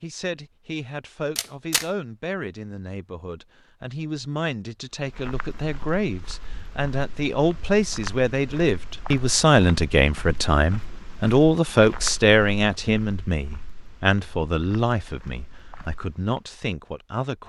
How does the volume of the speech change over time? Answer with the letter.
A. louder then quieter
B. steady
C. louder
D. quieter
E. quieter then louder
A.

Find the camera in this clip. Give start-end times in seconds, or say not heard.
1.4-1.9.